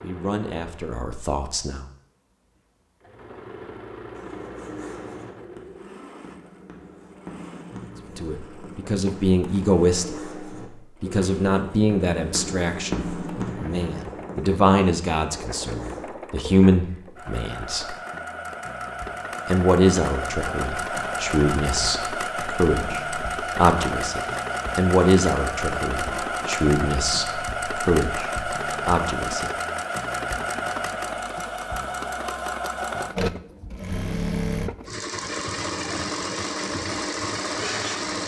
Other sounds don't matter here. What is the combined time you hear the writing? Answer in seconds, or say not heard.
12 s.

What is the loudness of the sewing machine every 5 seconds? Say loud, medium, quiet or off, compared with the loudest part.
quiet, quiet, quiet, medium, loud, loud, loud, loud.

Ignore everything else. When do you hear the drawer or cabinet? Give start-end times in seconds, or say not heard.
not heard.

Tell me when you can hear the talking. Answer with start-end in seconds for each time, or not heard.
0.0-1.9, 8.2-10.2, 11.0-17.9, 19.4-29.5.